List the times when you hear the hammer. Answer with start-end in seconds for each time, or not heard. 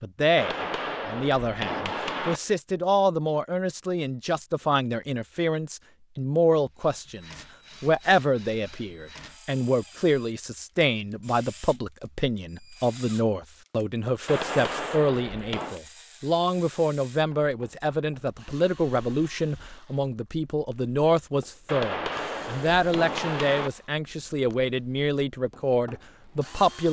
0.3-2.4, 14.2-15.8, 21.6-23.7.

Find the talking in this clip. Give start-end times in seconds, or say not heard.
0.0-26.8.